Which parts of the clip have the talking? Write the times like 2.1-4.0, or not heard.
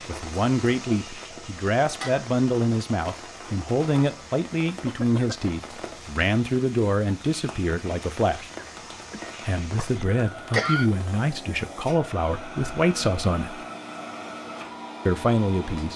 0.1-8.5, 9.4-13.6, 15.1-15.9.